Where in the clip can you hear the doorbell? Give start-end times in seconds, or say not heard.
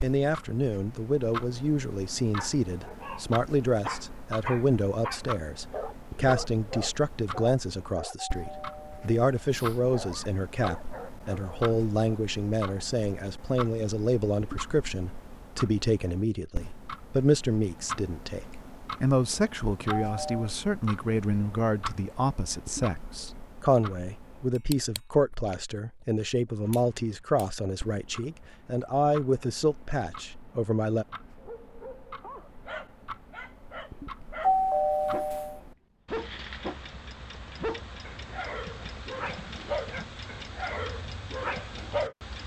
8.2-9.8, 19.9-20.5, 34.4-35.6.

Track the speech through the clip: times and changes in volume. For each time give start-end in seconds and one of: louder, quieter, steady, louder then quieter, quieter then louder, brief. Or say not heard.
0.0-31.1 steady.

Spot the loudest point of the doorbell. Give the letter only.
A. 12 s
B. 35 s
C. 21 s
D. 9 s
B.